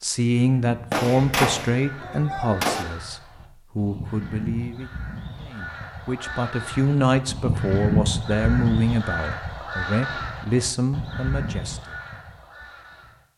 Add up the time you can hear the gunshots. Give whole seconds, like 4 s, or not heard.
2 s.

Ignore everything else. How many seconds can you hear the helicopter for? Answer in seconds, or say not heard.
not heard.